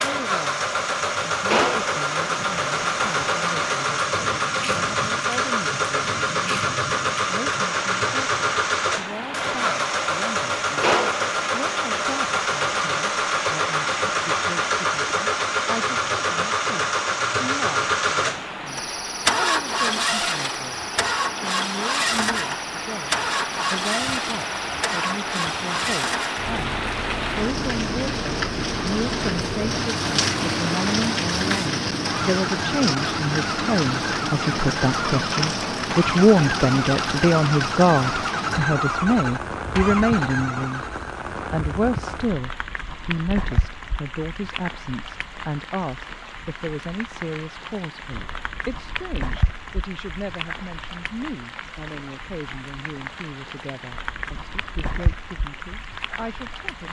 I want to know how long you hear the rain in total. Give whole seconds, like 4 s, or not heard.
57 s.